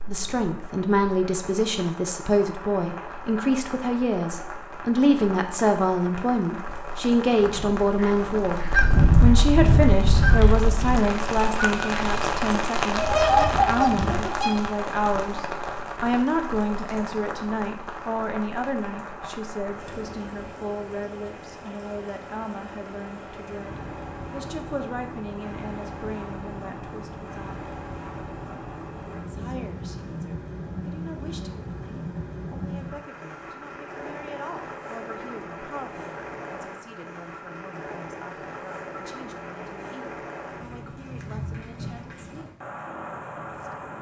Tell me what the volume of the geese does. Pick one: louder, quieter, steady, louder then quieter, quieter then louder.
quieter then louder.